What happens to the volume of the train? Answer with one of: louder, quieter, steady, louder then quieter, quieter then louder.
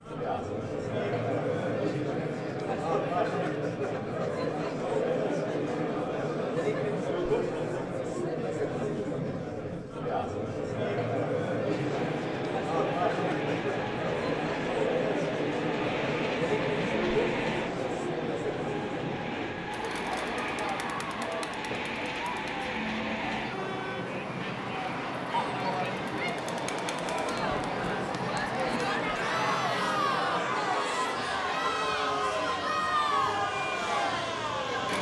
steady.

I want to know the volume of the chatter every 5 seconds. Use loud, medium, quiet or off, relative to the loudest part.
loud, loud, loud, loud, medium, loud, loud.